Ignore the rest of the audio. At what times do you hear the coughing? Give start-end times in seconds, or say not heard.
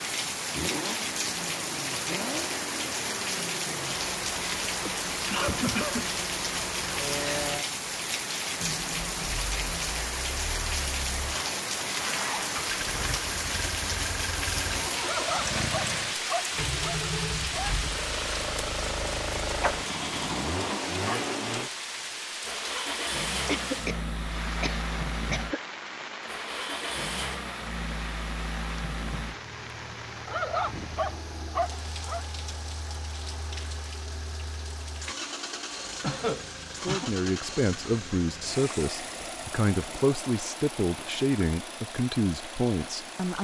4.8-6.0, 23.4-25.6, 36.0-37.1.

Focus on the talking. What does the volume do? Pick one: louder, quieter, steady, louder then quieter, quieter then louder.
steady.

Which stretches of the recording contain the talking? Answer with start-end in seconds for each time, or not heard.
36.8-43.3.